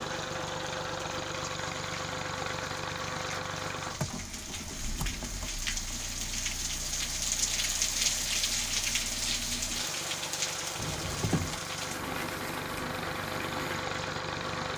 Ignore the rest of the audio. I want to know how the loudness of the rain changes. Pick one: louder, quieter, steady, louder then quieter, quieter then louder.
louder then quieter.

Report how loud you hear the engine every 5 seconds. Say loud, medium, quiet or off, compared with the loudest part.
loud, medium, loud.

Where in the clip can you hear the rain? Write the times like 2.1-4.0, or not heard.
0.0-14.7.